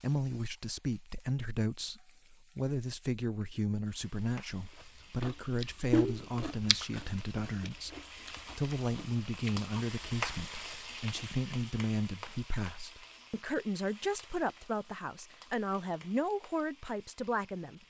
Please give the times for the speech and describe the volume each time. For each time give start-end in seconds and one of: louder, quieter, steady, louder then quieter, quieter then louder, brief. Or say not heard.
0.0-8.0 steady
8.6-17.8 steady.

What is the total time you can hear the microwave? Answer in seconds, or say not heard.
not heard.